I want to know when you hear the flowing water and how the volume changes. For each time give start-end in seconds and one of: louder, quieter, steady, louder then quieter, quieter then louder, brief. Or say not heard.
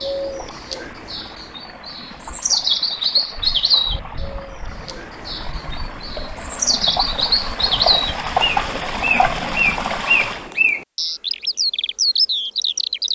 0.0-10.5 louder.